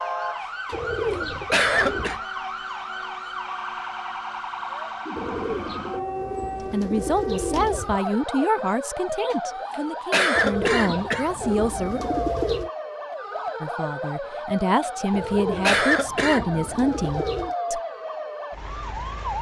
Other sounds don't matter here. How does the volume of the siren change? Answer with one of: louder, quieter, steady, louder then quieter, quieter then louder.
steady.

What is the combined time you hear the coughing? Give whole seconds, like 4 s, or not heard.
5 s.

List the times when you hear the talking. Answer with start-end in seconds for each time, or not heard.
6.6-12.0, 13.6-17.8.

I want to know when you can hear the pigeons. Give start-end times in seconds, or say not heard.
0.7-2.2, 5.2-8.0, 10.3-12.7, 15.1-17.6.